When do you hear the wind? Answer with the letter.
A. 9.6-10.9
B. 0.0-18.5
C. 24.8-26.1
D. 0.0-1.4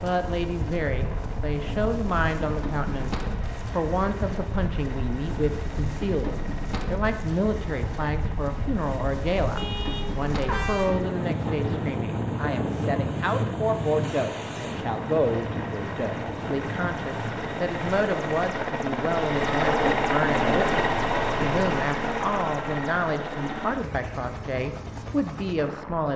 B.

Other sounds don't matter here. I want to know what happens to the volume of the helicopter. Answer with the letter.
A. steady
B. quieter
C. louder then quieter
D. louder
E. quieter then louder
D.